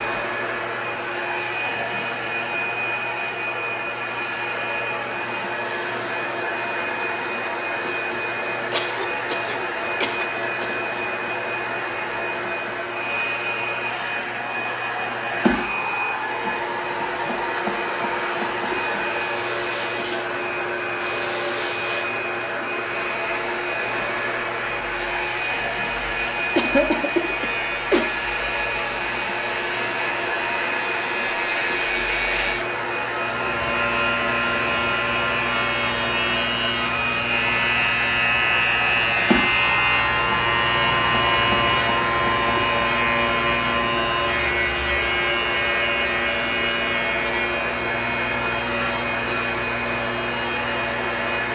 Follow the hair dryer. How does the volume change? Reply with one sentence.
The loudness of the hair dryer stays about the same.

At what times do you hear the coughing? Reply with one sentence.
The coughing can be heard from 8.7 to 10.7 s and from 26.6 to 28.1 s.